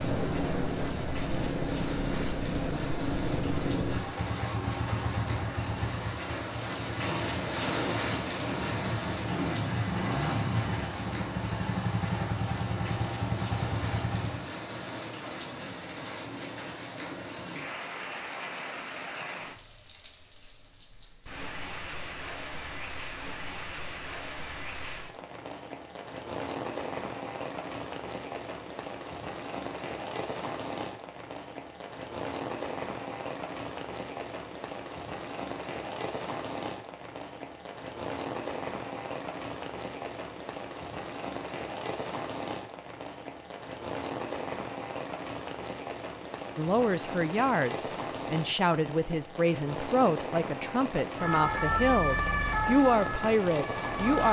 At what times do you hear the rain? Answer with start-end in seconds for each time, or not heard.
0.0-54.2.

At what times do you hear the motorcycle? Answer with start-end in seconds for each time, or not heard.
0.0-14.5.